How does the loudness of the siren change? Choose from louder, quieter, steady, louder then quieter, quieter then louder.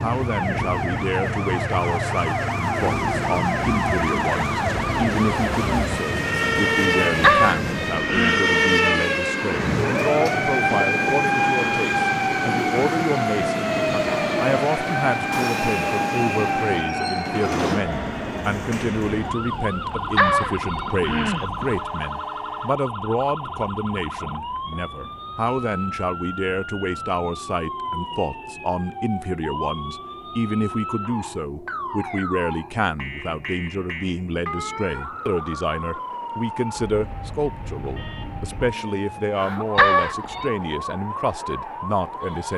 quieter.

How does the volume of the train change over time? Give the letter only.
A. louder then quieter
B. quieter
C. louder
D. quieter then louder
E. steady
B.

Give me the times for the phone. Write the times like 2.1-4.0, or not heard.
7.2-8.4, 20.1-21.9, 39.8-40.5.